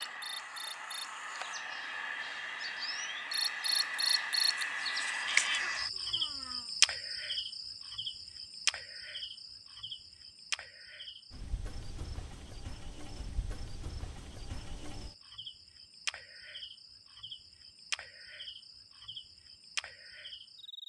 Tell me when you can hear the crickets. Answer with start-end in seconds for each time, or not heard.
0.0-20.8.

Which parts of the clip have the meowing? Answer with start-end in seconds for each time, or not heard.
5.2-6.7.